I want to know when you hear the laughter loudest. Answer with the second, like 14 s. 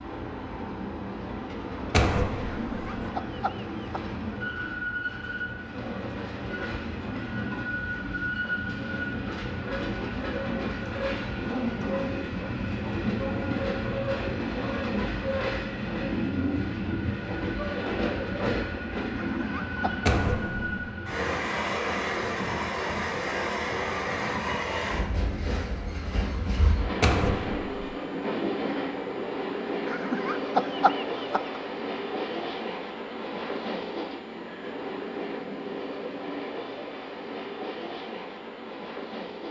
31 s.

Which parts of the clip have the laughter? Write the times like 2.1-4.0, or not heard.
2.5-4.2, 19.1-19.9, 29.9-31.6.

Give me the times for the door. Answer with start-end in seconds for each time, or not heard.
1.9-2.8, 20.1-20.8, 27.0-27.9.